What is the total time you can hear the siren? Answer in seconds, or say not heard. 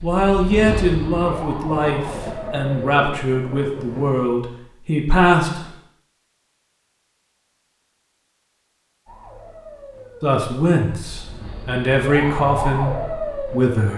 8 s.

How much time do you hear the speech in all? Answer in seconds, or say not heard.
9 s.